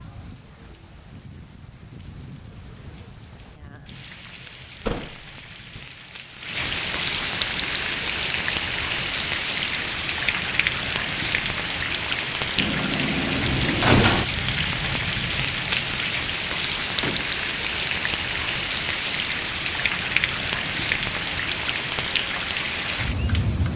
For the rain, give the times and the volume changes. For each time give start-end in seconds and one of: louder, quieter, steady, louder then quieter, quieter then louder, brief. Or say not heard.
0.0-23.7 louder.